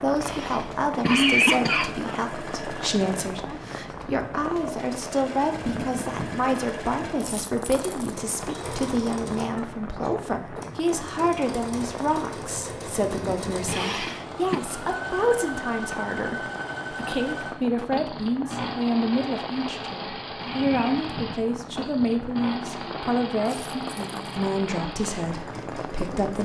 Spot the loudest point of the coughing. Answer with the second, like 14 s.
1 s.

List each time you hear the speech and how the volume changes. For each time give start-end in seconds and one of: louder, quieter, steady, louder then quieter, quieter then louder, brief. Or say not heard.
0.0-26.3 steady.